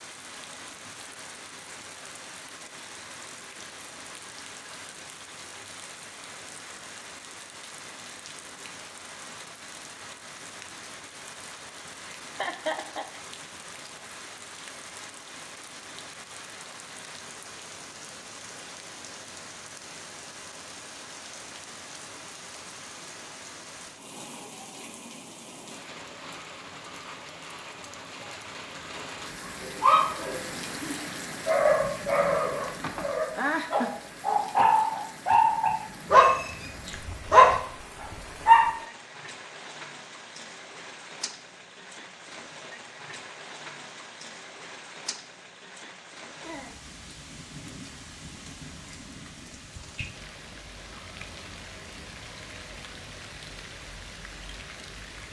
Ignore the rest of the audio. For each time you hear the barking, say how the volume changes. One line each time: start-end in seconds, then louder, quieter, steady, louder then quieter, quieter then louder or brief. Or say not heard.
29.6-38.7 louder.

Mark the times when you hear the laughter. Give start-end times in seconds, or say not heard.
11.8-13.2, 32.8-33.9.